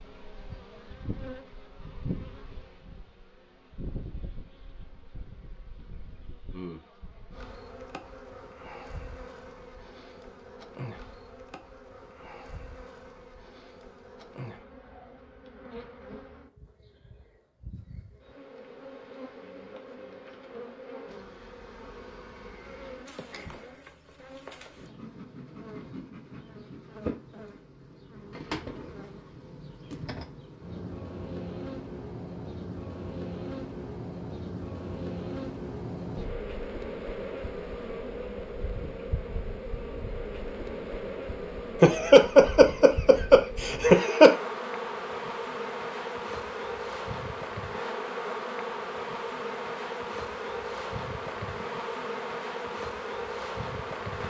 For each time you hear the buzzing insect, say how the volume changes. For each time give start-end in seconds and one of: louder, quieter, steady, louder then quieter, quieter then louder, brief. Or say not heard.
0.0-54.2 louder.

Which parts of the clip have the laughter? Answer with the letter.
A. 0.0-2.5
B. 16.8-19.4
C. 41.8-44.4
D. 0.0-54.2
C.